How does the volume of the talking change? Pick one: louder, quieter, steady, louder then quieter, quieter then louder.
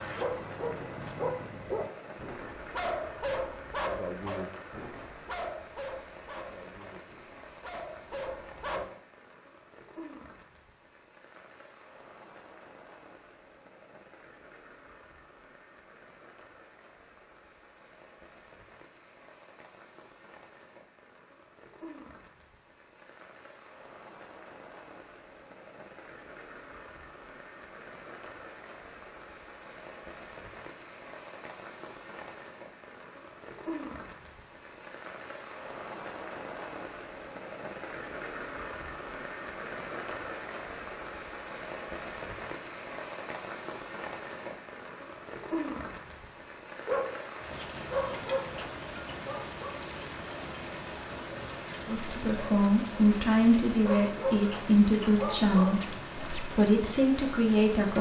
steady.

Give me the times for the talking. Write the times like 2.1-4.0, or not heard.
51.9-57.9.